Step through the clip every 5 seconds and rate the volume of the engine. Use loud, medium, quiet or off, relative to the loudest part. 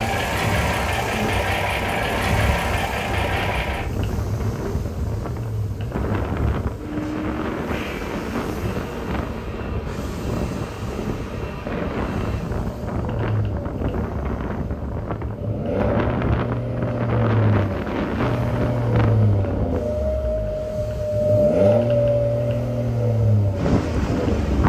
loud, medium, medium, loud, loud.